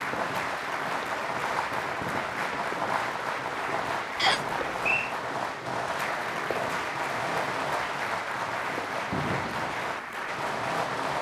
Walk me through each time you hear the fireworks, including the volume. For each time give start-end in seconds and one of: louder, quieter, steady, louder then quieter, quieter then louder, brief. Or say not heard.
0.0-11.1 steady.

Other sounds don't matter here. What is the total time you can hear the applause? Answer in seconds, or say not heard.
11 s.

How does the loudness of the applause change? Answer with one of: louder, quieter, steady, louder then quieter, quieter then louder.
steady.